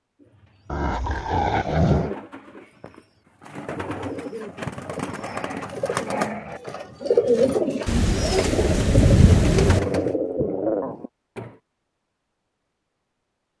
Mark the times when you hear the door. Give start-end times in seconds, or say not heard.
not heard.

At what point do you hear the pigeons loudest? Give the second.
7 s.